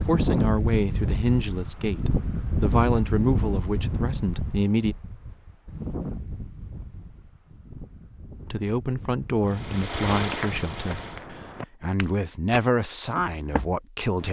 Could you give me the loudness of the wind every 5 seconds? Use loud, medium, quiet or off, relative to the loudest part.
loud, medium, off.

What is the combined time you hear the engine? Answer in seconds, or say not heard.
2 s.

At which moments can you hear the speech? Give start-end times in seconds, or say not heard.
0.1-5.0, 8.5-14.2.